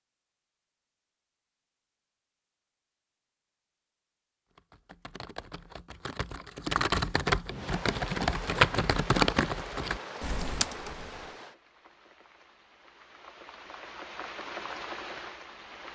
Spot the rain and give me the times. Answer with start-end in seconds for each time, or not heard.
7.5-15.9.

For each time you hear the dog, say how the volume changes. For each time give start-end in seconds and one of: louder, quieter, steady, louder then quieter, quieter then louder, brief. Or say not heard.
not heard.